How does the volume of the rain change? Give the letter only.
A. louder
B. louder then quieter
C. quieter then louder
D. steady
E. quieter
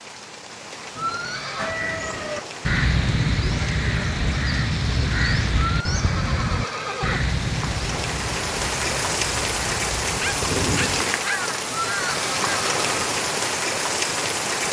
A.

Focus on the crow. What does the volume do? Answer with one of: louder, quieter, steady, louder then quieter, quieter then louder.
quieter.